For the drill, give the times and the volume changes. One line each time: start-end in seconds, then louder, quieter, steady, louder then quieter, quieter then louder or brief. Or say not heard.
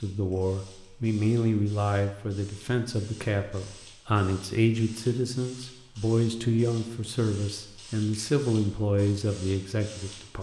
not heard.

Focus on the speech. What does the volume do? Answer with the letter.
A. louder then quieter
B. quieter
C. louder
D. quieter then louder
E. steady
E.